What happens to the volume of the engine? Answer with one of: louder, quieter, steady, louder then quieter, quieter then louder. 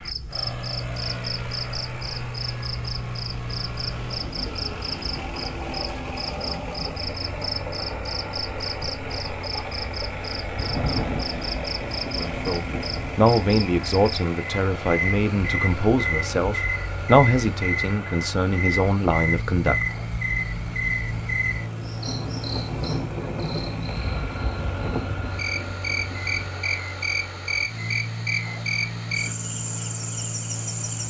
steady.